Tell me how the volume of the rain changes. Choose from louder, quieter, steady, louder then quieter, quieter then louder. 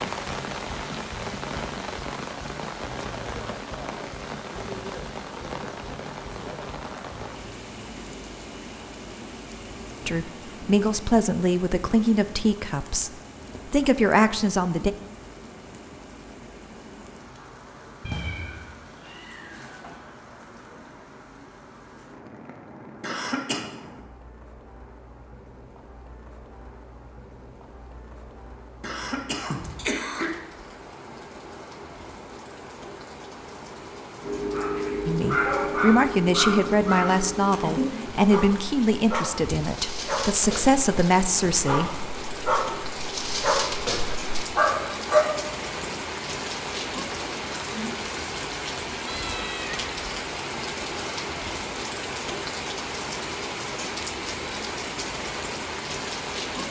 quieter then louder.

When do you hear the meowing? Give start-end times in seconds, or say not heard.
18.0-20.1, 49.0-49.9.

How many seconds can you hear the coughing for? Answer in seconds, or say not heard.
2 s.